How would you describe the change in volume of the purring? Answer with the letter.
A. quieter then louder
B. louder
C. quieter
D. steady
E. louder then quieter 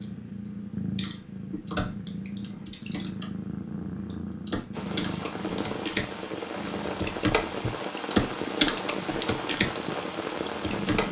C.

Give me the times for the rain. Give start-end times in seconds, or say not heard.
4.7-11.0.